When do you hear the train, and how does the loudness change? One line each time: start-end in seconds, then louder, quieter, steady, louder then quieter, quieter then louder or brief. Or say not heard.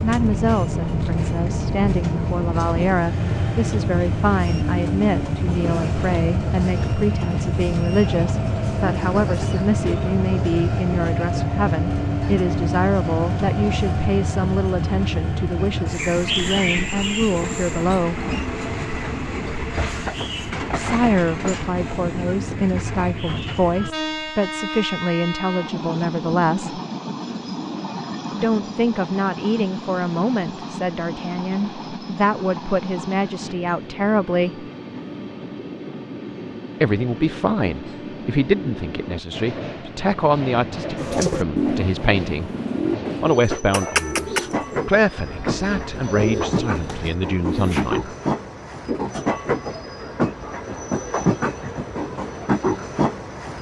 0.0-53.5 quieter then louder.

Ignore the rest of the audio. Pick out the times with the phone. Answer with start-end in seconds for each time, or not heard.
not heard.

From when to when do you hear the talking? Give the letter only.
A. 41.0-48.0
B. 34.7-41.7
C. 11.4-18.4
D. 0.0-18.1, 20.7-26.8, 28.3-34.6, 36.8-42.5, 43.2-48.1
D.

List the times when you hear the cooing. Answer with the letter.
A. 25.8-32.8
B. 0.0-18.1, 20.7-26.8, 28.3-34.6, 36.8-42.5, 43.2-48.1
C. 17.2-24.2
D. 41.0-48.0
D.